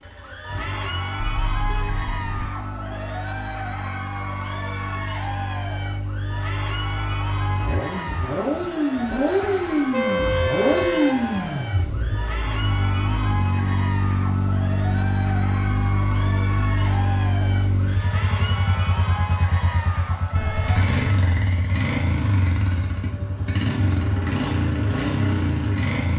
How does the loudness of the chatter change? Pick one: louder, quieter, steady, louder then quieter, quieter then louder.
steady.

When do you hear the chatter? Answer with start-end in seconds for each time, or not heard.
0.1-20.9.